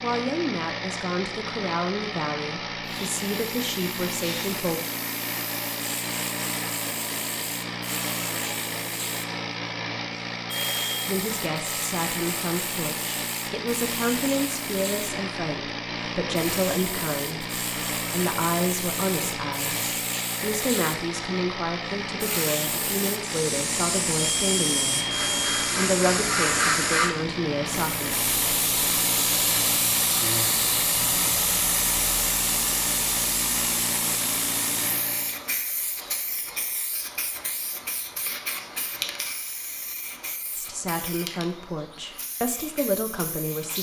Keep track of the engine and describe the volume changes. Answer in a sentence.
The volume of the engine stays about the same.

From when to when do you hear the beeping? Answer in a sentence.
The beeping can be heard from 10.4 to 11.1 s and from 24.1 to 25.7 s.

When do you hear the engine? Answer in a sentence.
The engine can be heard from 0.0 to 35.5 s.